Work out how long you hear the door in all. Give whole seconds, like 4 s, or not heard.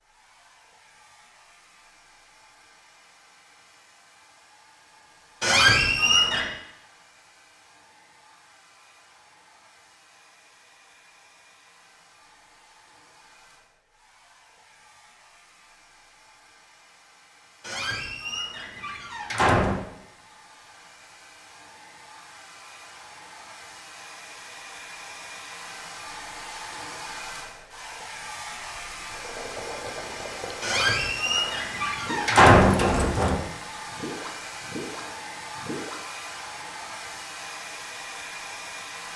6 s.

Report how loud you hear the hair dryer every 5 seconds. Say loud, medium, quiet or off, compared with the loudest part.
quiet, quiet, quiet, quiet, medium, loud, loud, loud.